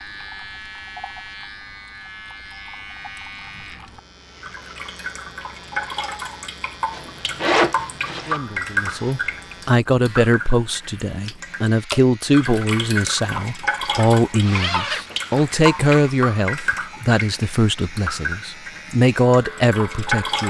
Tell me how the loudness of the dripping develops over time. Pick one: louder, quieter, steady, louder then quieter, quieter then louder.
louder.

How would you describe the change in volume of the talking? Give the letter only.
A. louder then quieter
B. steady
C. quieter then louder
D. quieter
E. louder
B.